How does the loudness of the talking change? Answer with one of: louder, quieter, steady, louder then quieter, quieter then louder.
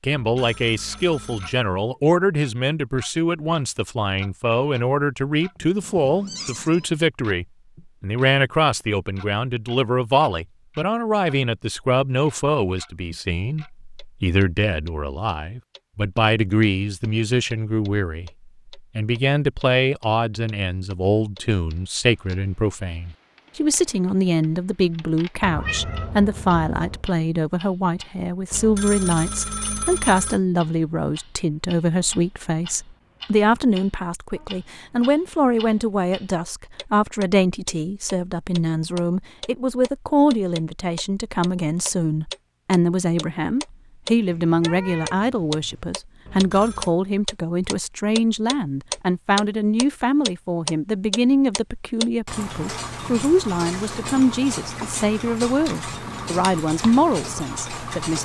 steady.